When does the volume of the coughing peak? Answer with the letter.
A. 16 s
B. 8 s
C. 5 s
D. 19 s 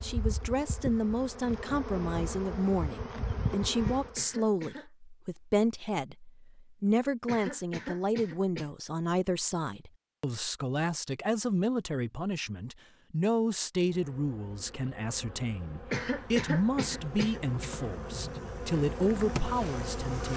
A.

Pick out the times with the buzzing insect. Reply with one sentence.
You can hear the buzzing insect from 0.0 to 4.2 s and from 13.8 to 20.3 s.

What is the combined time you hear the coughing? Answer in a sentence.
You can hear the coughing for 4 seconds altogether.